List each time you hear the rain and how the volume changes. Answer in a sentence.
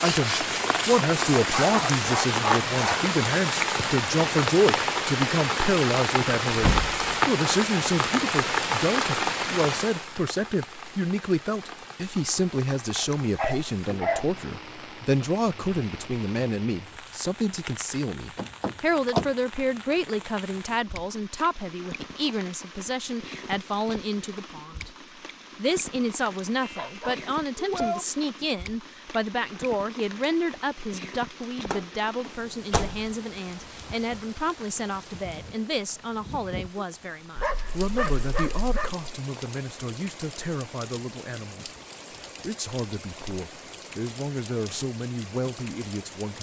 The rain can be heard from 0.0 to 46.3 s, getting quieter.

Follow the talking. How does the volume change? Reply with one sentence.
The volume of the talking goes down.